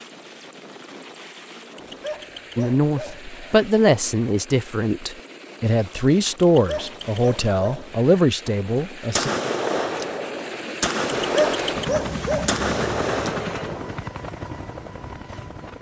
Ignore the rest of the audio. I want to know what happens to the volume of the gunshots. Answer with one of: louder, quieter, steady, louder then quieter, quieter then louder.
steady.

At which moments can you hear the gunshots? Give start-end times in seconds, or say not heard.
9.1-13.9.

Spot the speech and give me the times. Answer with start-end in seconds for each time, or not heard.
2.5-9.3.